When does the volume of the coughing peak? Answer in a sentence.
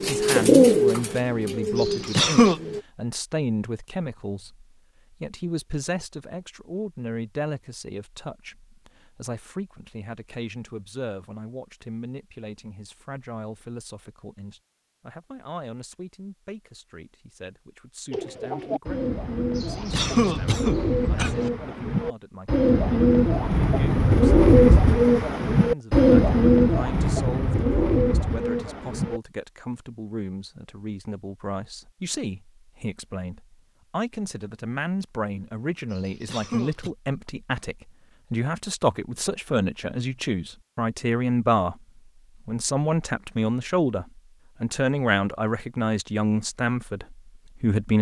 The volume of the coughing peaks at 2 seconds.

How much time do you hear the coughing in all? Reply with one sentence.
The coughing can be heard for 4 seconds in total.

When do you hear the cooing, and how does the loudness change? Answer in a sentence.
The cooing can be heard briefly from 0.0 to 2.9 s; and from 18.1 to 29.2 s, getting louder then quieter.